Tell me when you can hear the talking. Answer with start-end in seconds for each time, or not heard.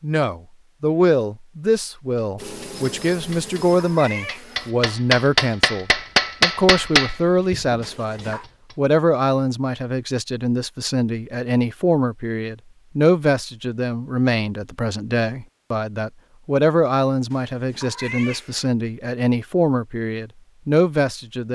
0.0-21.5.